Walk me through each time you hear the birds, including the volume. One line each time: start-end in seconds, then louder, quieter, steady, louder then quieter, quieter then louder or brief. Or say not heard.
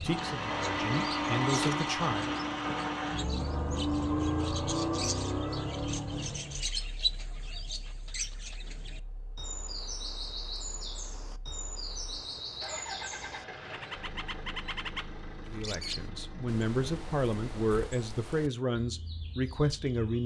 0.0-20.2 louder then quieter.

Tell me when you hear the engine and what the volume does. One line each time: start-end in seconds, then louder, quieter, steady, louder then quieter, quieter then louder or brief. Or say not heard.
0.0-17.9 quieter then louder.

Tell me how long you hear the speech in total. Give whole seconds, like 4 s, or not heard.
7 s.